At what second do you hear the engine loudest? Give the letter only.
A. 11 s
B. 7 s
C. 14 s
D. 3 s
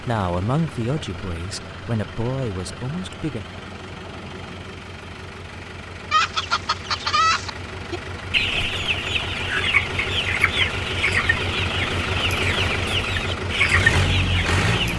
C.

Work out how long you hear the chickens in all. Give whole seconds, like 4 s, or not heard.
9 s.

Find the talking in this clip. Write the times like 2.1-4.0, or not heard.
0.0-3.5.